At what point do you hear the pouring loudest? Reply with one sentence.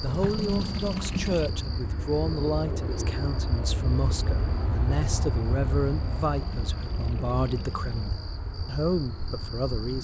The loudest moment of the pouring is at 1 second.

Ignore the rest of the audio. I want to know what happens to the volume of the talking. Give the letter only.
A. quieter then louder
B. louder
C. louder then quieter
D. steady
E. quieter
D.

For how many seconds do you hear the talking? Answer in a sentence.
The talking can be heard for 10 seconds in total.